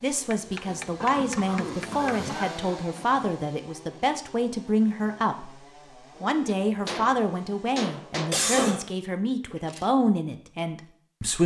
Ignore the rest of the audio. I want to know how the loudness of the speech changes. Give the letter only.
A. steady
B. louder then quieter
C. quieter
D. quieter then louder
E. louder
A.